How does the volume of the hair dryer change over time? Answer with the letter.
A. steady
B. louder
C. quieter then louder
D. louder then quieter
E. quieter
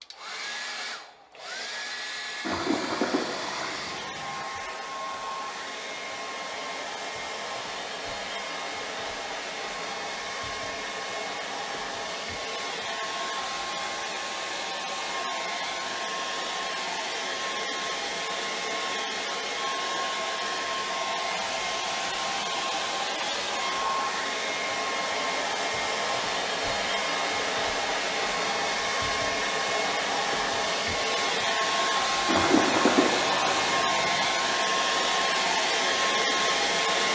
B.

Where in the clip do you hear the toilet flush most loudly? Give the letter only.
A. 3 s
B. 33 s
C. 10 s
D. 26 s
B.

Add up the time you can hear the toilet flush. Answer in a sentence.
The toilet flush can be heard for 4 seconds in total.